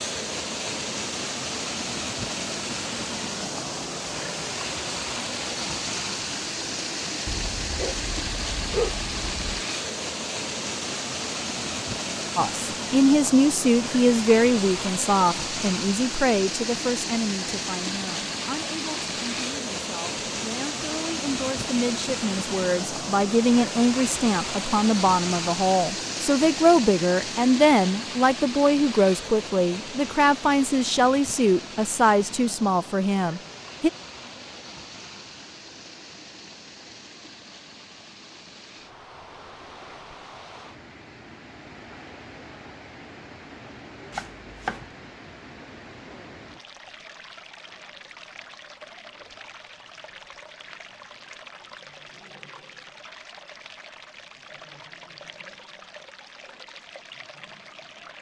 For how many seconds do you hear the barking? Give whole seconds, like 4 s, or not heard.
2 s.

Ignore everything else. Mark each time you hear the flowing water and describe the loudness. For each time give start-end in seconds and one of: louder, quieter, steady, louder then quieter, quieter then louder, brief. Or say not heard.
0.0-58.1 quieter.